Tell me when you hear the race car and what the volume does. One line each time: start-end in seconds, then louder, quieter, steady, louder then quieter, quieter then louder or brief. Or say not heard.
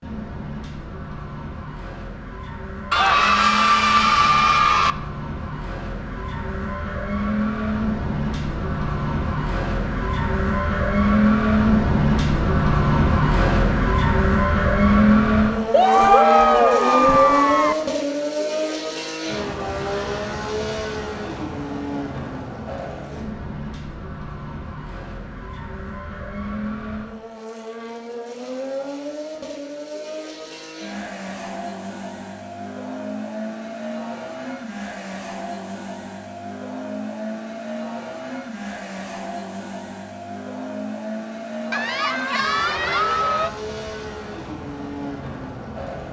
0.0-46.0 louder then quieter.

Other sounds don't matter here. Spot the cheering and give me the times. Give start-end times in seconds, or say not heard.
2.9-5.0, 15.7-17.8, 41.7-43.5.